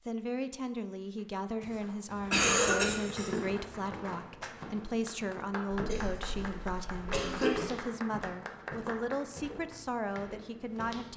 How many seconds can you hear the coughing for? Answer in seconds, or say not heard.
4 s.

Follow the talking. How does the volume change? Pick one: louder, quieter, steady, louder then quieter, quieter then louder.
steady.